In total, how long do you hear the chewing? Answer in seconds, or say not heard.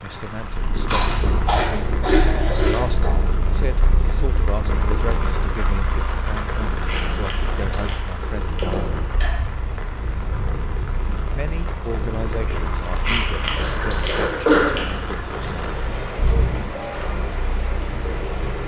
6 s.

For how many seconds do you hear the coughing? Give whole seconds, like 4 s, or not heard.
3 s.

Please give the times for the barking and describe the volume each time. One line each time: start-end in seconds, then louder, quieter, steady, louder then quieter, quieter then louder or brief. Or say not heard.
not heard.